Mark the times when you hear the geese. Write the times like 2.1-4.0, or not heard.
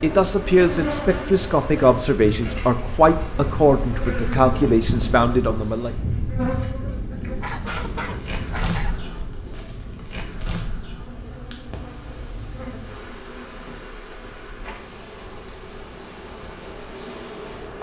7.4-9.0.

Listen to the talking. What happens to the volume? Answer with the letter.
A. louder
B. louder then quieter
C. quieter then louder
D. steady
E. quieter
D.